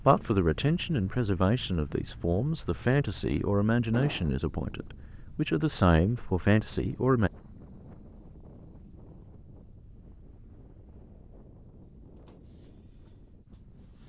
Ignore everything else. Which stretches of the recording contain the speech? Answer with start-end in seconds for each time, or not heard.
0.0-7.3.